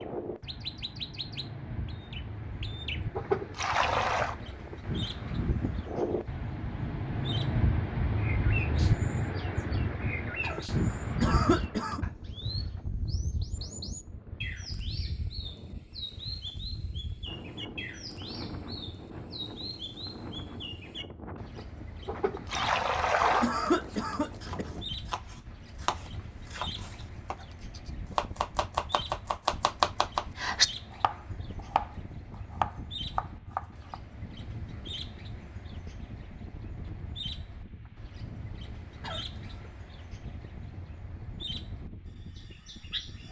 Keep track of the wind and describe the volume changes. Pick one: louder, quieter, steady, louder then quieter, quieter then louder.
quieter.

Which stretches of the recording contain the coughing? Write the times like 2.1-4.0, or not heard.
10.4-12.0, 22.6-24.6, 39.0-39.7.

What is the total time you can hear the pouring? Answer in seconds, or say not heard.
3 s.